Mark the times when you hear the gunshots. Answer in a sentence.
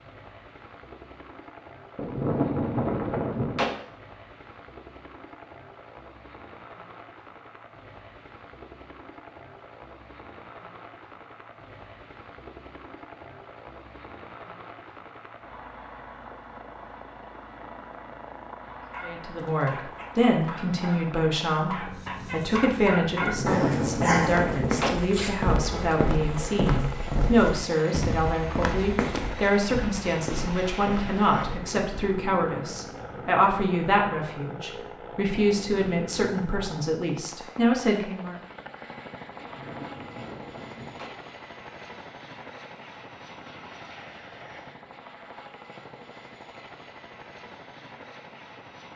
You can hear the gunshots from 1.9 to 3.8 s, from 23.2 to 25.0 s and from 39.4 to 41.1 s.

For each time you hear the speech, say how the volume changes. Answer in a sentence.
You can hear the speech from 19.0 to 38.4 s, at a steady volume.